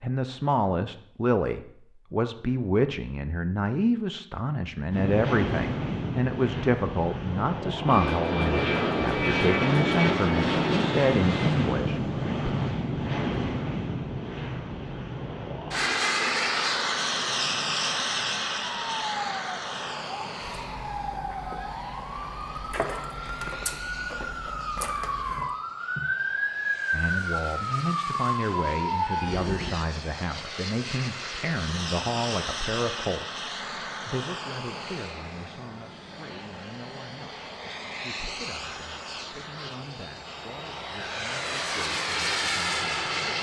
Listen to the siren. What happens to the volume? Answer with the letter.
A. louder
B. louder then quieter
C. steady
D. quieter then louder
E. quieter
A.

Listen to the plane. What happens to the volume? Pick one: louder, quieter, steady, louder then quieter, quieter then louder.
quieter then louder.